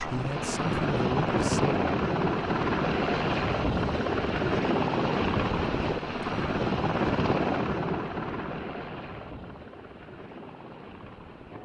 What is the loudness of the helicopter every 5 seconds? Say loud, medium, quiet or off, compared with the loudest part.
loud, loud, quiet.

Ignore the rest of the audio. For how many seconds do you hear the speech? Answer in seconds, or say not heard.
2 s.